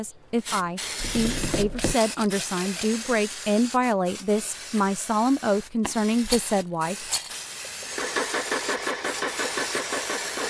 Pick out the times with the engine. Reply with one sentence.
You can hear the engine from 7.8 to 10.4 s.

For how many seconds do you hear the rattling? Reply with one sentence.
You can hear the rattling for 3 seconds altogether.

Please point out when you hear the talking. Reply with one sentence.
You can hear the talking from 0.0 to 7.0 s.